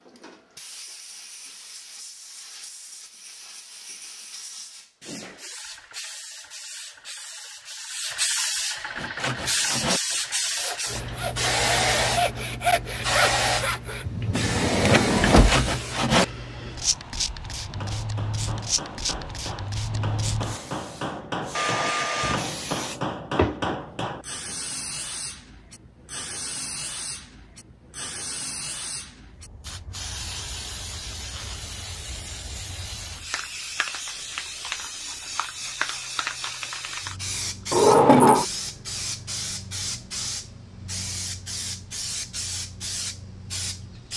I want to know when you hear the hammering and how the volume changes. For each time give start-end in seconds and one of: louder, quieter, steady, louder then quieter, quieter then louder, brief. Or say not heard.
17.6-24.6 louder.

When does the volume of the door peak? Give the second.
38 s.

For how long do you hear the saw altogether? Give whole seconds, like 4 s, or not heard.
7 s.